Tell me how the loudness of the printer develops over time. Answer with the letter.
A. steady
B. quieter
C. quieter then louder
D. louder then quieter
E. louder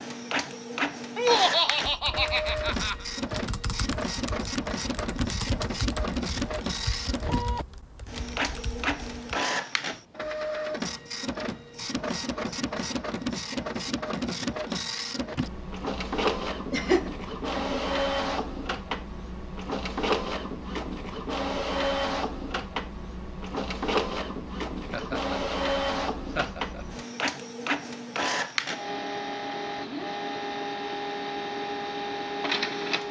A.